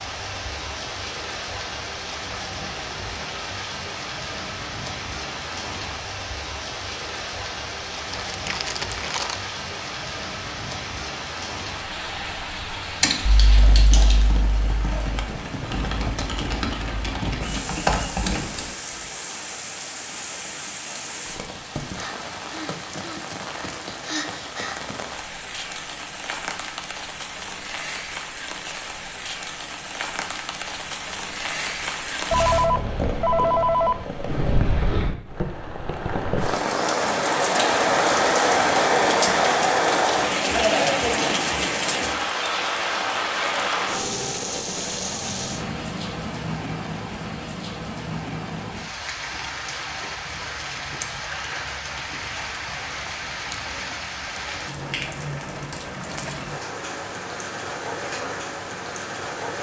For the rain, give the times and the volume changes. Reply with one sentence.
The rain can be heard from 0.0 to 59.5 s, getting louder then quieter.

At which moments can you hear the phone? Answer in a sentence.
The phone can be heard from 32.3 to 34.0 s.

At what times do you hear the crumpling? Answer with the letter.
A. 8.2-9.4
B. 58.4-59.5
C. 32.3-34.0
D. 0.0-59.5
A.